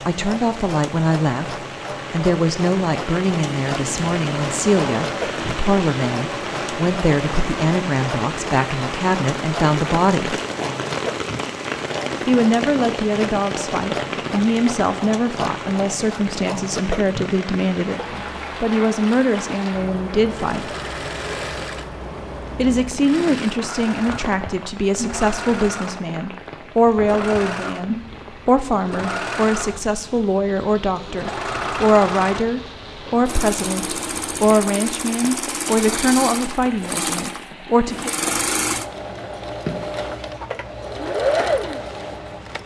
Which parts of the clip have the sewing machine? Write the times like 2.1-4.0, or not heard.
0.0-29.9, 30.9-42.6.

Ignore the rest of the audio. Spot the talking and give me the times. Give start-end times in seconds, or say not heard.
0.1-10.4, 12.2-20.7, 22.6-38.1.